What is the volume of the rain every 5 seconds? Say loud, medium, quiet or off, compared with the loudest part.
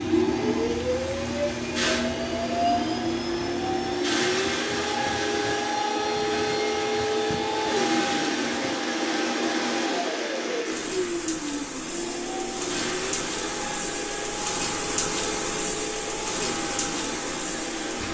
medium, medium, loud, loud.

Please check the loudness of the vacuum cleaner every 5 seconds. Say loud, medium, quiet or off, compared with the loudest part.
loud, loud, medium, medium.